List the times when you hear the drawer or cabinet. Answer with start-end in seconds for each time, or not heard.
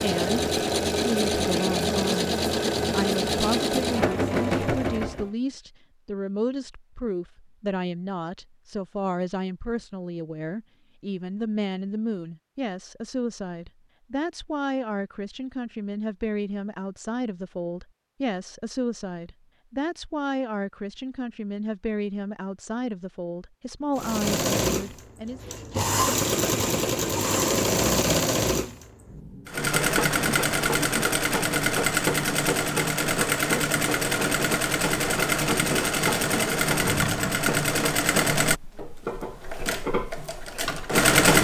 36.8-37.5.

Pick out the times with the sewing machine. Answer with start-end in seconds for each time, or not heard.
0.0-5.3, 23.9-41.3.